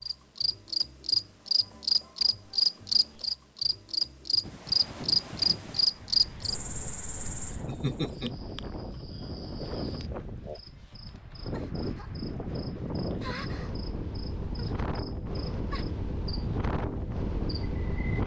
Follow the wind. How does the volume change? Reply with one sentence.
The loudness of the wind goes up.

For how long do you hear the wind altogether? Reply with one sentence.
You can hear the wind for 14 seconds altogether.